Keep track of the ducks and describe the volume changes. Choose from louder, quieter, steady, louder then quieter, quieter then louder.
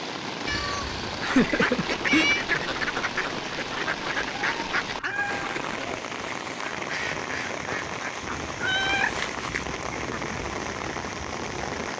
quieter.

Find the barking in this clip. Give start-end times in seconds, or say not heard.
not heard.